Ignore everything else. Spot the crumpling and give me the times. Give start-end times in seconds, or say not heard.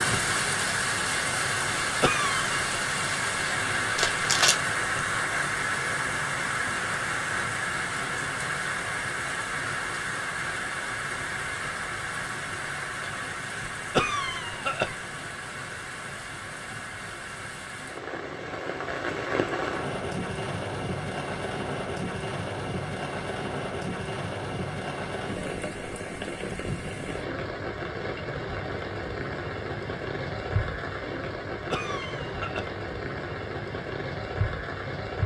4.0-4.6.